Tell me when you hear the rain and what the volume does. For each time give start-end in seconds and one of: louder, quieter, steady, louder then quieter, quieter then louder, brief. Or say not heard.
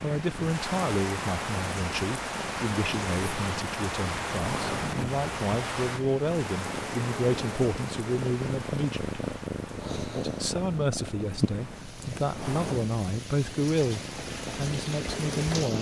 0.0-15.7 quieter then louder.